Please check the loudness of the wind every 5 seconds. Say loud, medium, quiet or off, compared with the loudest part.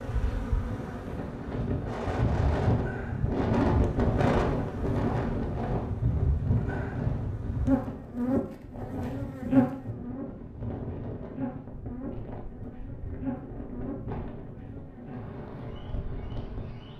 loud, medium, medium, quiet.